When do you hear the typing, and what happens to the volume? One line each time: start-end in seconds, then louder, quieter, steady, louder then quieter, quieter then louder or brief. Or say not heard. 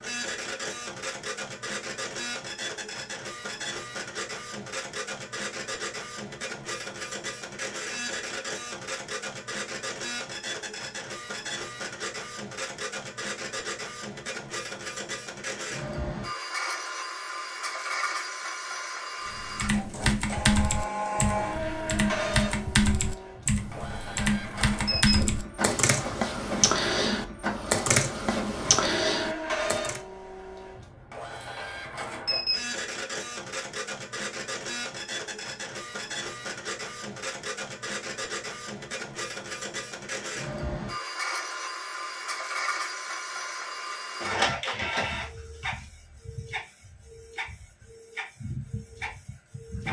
19.2-30.0 steady.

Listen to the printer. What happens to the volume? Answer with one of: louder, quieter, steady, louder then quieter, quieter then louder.
steady.